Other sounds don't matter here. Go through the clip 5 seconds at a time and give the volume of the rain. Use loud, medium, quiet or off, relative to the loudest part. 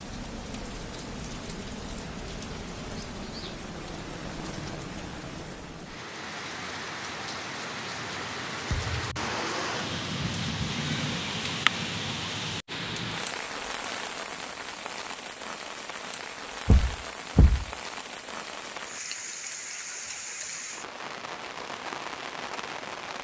medium, loud, loud, medium, medium.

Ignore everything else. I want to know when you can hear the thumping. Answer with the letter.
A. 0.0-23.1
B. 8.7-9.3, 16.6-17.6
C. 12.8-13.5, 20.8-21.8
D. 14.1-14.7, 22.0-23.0
B.